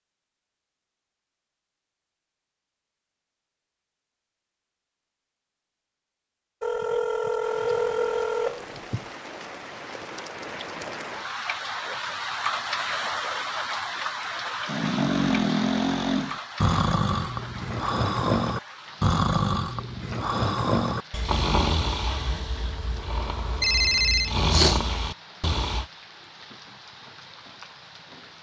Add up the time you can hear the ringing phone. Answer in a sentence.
The ringing phone can be heard for 3 seconds in total.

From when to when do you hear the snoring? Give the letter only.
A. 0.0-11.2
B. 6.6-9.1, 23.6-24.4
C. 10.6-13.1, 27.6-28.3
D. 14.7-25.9
D.